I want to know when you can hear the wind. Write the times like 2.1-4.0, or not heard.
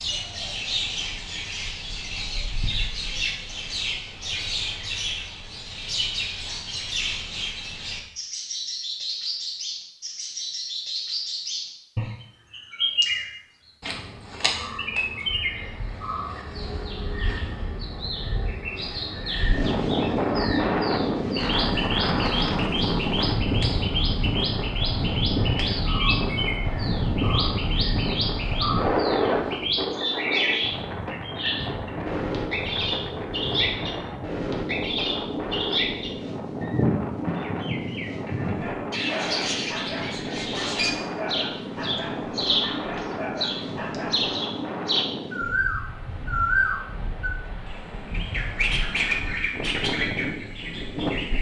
19.4-51.3.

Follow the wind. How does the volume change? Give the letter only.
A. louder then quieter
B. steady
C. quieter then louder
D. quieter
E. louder
D.